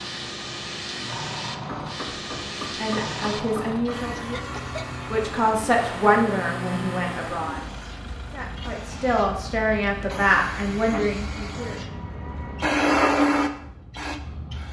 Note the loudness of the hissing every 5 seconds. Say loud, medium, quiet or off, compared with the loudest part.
medium, quiet, loud.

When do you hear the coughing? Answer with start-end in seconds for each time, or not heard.
4.1-4.9.